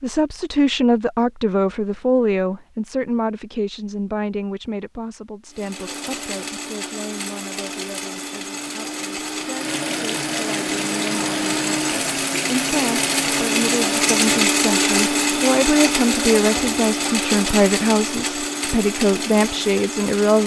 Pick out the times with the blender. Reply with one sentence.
The blender can be heard from 5.5 to 20.4 s.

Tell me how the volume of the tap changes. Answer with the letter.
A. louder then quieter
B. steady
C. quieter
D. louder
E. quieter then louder
B.